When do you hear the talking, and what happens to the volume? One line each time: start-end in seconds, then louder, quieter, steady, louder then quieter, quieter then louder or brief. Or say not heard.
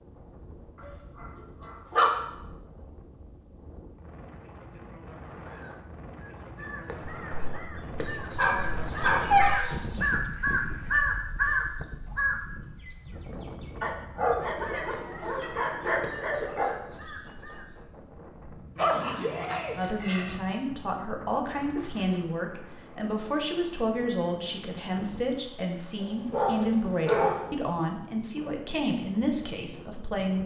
19.8-30.4 steady.